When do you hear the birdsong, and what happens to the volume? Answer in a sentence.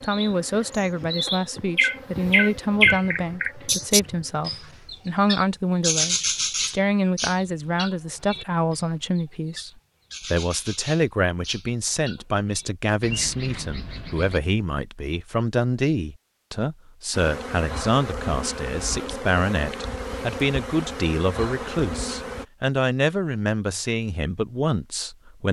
The birdsong can be heard from 0.0 to 14.4 s, getting quieter.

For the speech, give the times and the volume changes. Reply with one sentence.
You can hear the speech from 0.0 to 25.4 s, at a steady volume.